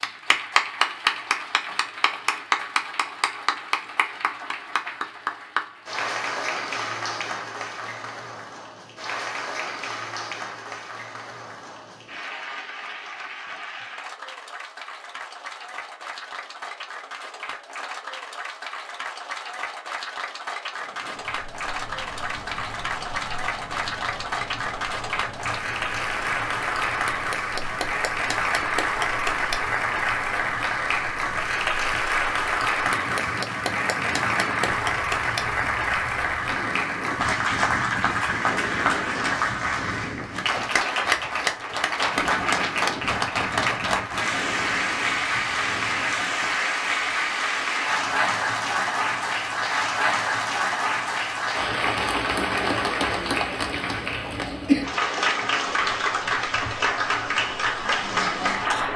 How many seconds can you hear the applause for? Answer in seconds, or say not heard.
59 s.